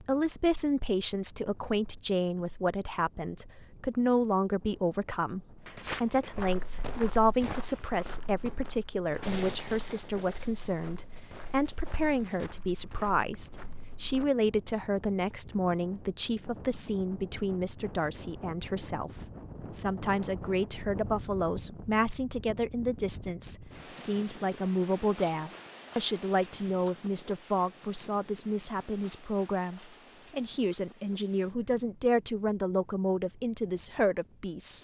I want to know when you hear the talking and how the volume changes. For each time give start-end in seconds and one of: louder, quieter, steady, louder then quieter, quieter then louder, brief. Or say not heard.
0.0-34.7 steady.